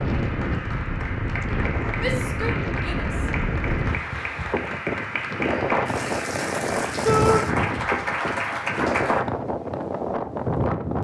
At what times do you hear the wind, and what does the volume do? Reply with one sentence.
You can hear the wind from 0.0 to 11.0 s, at a steady volume.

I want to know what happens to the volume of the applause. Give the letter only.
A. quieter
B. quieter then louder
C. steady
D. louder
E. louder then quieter
D.